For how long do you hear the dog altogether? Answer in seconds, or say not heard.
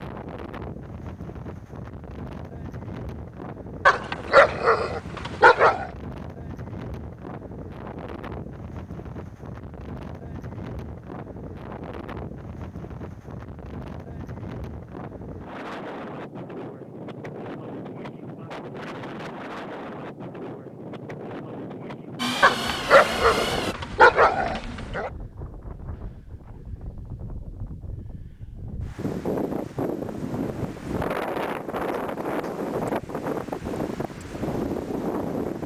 5 s.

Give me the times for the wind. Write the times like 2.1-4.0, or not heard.
0.0-35.6.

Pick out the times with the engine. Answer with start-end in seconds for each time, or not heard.
22.1-23.8.